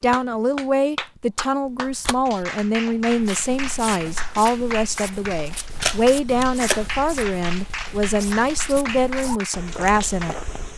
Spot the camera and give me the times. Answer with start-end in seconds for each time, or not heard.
1.6-3.0, 5.8-6.9.